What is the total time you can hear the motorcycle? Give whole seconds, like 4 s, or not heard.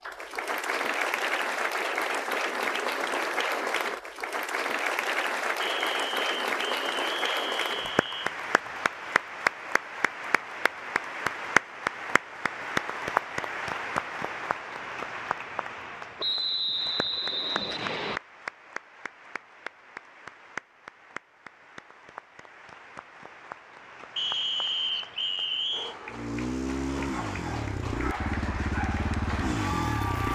4 s.